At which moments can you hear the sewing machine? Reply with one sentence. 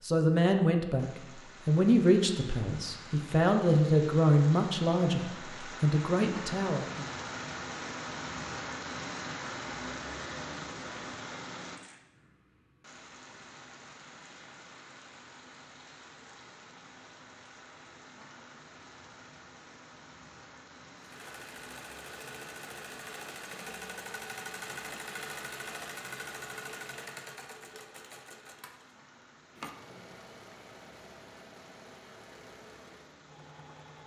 The sewing machine can be heard from 20.9 to 34.0 s.